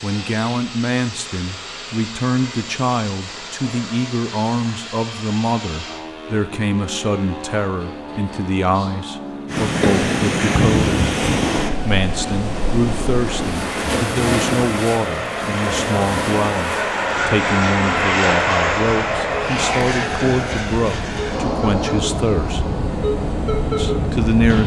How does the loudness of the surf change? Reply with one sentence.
The volume of the surf goes down, then up.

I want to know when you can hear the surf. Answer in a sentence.
You can hear the surf from 9.4 to 24.6 s.